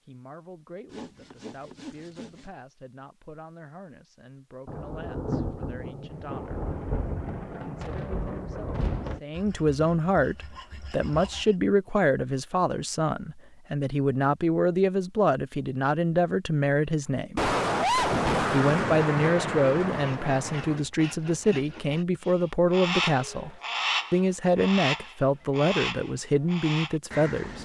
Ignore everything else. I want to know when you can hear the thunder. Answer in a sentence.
The thunder can be heard from 4.7 to 9.2 s and from 17.4 to 20.8 s.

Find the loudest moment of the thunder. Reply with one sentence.
The volume of the thunder peaks at 18 seconds.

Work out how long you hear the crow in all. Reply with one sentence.
The crow can be heard for 5 seconds in total.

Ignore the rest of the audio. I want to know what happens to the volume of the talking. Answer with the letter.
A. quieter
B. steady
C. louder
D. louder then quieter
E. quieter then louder
C.